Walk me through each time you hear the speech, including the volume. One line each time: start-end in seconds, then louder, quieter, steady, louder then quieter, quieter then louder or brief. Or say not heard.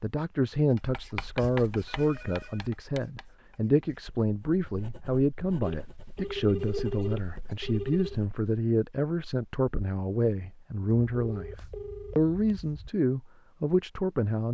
0.0-14.4 steady.